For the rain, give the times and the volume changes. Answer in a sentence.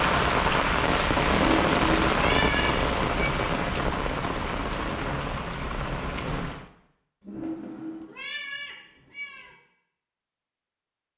You can hear the rain from 0.0 to 6.7 s, getting quieter.